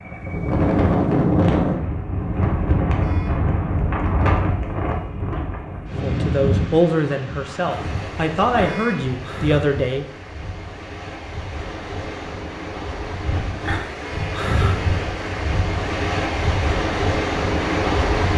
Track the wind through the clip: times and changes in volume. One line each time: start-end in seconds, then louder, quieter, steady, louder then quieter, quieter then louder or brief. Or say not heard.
0.0-18.3 quieter then louder.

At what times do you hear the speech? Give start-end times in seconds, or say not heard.
6.0-10.1.